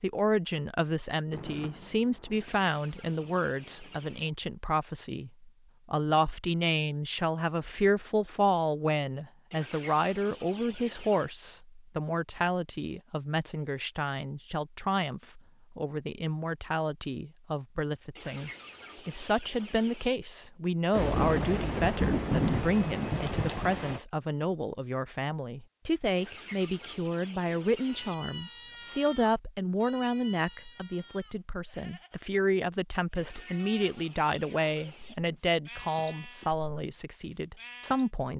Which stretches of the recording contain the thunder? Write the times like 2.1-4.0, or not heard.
1.3-4.1, 20.9-24.0.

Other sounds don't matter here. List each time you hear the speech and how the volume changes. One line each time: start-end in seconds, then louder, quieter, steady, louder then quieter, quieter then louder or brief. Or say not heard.
0.0-38.3 steady.